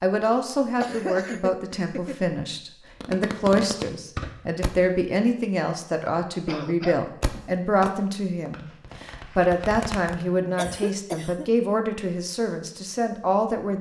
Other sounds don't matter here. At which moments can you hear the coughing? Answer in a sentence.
You can hear the coughing from 0.8 to 2.2 s, from 6.5 to 7.0 s and from 10.6 to 11.5 s.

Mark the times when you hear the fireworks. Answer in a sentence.
You can hear the fireworks from 3.0 to 4.8 s and from 7.2 to 10.2 s.